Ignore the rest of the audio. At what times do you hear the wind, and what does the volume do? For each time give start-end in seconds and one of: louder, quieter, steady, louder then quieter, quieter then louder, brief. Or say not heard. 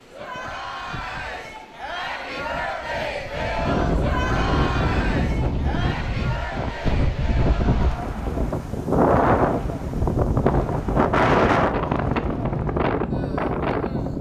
0.0-14.1 louder.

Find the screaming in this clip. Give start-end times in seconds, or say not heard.
not heard.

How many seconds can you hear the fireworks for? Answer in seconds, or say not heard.
not heard.